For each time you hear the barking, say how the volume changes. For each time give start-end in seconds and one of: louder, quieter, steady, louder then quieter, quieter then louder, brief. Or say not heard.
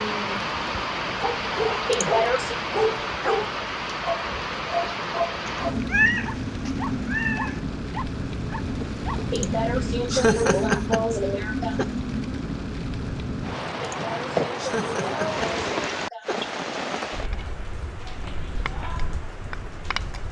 1.2-9.2 quieter.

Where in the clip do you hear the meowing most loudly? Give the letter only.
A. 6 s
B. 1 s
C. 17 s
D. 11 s
A.